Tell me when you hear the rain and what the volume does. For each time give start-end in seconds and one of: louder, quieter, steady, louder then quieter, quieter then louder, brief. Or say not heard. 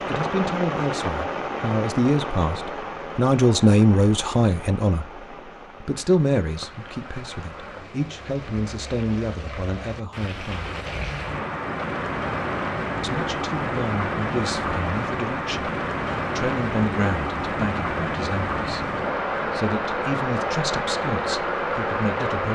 0.0-22.5 quieter then louder.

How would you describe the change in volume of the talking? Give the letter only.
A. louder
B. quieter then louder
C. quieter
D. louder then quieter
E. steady
C.